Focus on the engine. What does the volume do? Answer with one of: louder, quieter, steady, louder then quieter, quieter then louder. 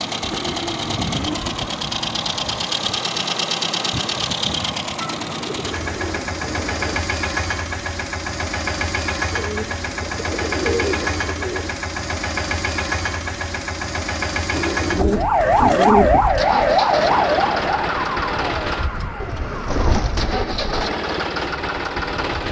steady.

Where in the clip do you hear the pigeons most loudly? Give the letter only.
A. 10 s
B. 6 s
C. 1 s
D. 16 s
D.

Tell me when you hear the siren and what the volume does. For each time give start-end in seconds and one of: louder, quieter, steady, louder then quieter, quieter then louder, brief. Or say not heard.
15.1-20.2 quieter.